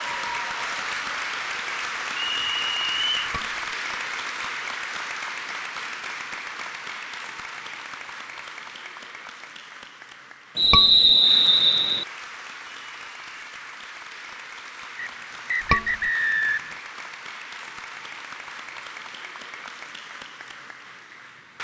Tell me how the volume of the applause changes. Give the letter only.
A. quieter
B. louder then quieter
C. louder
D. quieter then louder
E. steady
A.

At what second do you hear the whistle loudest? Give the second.
11 s.